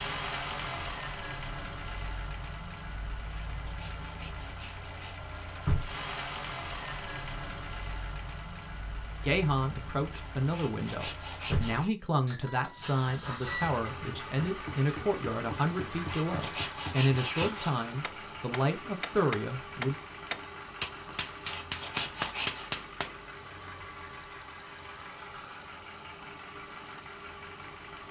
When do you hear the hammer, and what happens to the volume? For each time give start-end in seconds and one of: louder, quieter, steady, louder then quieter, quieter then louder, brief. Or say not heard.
14.1-23.2 louder.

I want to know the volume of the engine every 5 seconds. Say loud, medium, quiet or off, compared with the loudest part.
loud, loud, loud, loud, medium, medium.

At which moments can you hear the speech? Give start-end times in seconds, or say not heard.
9.2-19.9.